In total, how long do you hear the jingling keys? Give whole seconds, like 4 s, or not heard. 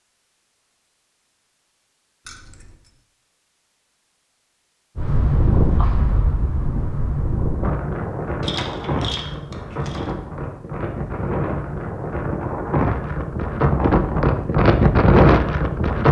2 s.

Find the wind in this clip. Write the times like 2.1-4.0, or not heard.
5.0-16.0.